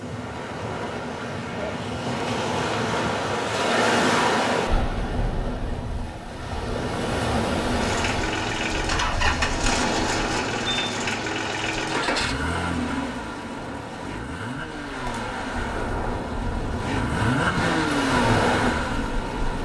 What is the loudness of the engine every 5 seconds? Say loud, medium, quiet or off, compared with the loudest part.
off, loud, loud, loud.